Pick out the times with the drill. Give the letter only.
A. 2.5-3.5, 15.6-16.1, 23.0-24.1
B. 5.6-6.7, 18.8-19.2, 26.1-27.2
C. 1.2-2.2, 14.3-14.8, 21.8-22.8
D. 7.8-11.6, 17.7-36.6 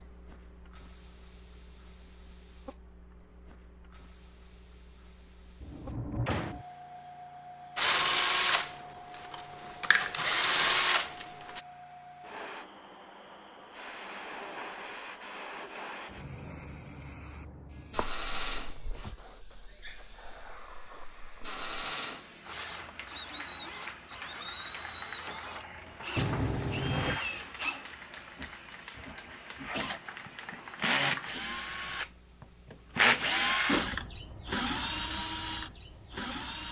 D.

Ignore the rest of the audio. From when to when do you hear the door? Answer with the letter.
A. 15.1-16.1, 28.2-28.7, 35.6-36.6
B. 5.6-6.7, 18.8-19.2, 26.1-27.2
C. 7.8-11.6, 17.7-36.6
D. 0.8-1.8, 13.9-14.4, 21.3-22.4
B.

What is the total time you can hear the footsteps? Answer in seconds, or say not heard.
not heard.